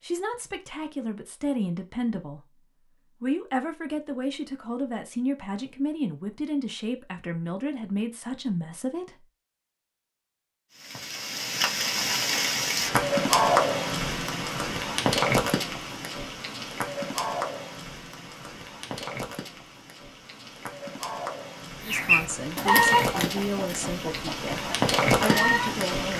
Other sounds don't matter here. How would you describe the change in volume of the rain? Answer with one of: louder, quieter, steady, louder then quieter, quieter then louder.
quieter then louder.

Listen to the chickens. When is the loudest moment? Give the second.
23 s.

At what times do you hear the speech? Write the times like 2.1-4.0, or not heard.
0.0-9.2, 21.8-26.1.